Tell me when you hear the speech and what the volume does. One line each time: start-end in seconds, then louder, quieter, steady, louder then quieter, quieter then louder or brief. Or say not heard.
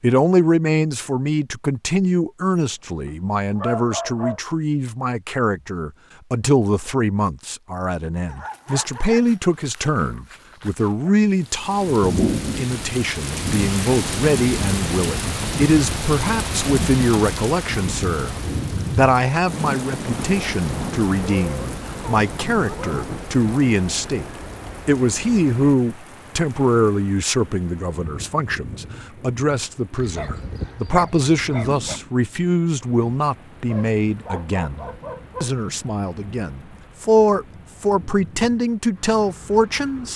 0.0-40.1 steady.